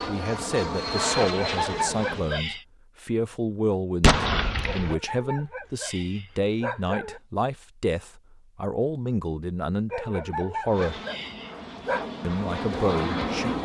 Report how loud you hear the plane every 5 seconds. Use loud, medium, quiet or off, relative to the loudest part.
loud, off, loud.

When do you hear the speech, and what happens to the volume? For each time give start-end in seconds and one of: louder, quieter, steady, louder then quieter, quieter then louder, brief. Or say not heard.
0.1-11.0 steady
12.2-13.6 brief.